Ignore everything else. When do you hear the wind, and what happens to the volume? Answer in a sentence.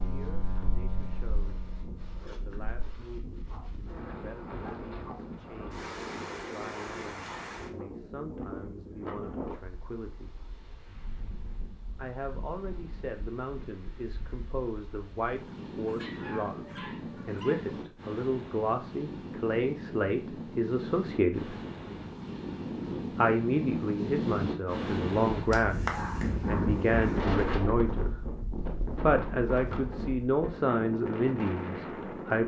The wind can be heard from 0.0 to 32.4 s, getting louder.